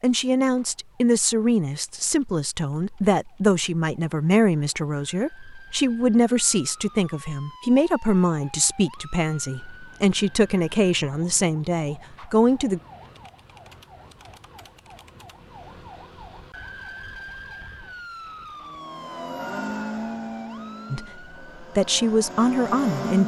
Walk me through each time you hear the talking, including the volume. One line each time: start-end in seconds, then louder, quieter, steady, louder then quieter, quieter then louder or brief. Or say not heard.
0.0-12.8 steady
20.9-23.2 brief.